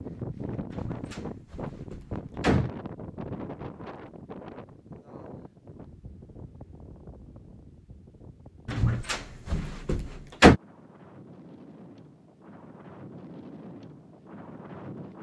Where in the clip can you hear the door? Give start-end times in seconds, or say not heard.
0.7-2.7, 8.7-10.6.